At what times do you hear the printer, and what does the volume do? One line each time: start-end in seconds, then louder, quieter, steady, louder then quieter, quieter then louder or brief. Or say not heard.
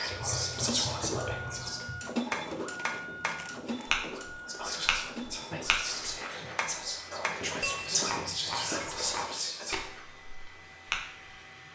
0.0-11.7 quieter.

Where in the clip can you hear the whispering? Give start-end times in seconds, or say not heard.
0.0-1.9, 4.2-9.8.